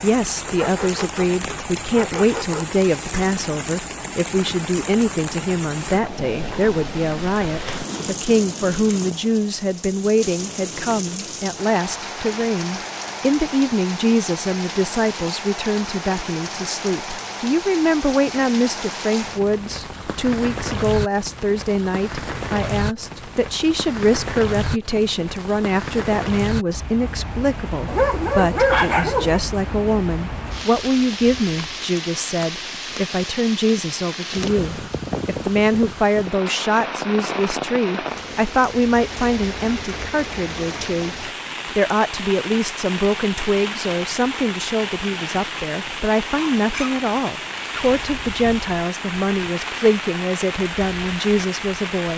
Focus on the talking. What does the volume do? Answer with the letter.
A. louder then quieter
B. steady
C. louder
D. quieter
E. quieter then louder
B.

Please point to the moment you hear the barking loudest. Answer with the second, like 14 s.
29 s.